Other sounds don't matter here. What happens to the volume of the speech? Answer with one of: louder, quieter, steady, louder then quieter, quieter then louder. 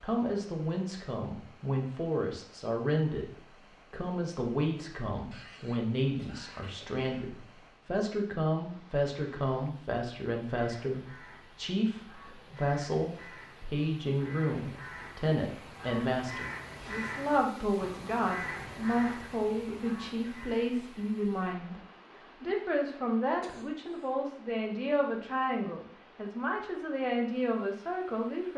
steady.